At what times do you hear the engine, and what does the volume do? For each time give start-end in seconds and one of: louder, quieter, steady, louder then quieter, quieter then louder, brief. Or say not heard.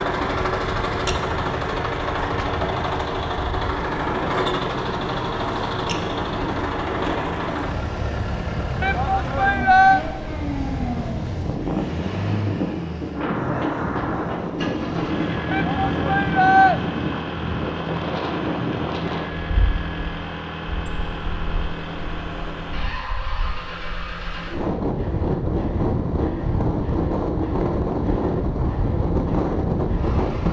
0.0-30.4 quieter.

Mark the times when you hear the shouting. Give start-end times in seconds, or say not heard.
8.8-10.0, 15.5-16.8.